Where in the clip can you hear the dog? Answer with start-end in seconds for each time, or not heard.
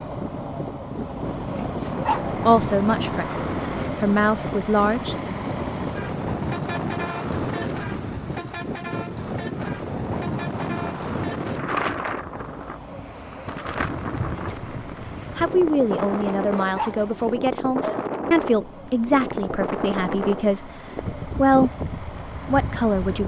1.4-2.4, 16.1-18.1.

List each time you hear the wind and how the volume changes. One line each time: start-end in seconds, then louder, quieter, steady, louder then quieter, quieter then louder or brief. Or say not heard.
0.0-23.2 steady.